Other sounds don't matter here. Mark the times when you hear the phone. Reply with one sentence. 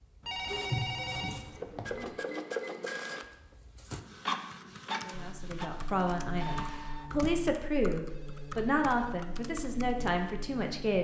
You can hear the phone from 0.2 to 2.1 s and from 8.1 to 9.3 s.